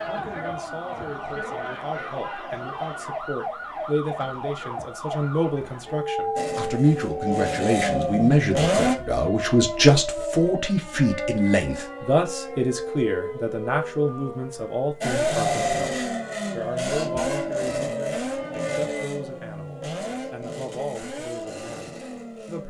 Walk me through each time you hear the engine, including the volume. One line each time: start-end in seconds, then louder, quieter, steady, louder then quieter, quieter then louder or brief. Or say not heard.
6.3-8.9 brief
15.0-22.6 quieter.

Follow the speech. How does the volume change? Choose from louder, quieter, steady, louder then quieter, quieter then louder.
louder then quieter.